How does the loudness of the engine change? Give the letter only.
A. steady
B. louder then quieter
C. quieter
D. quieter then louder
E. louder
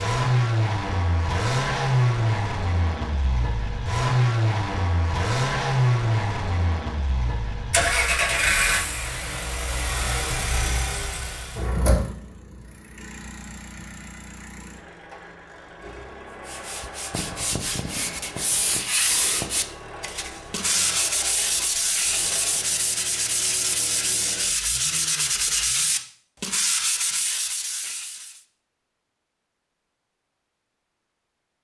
C.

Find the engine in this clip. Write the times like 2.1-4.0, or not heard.
0.0-26.1.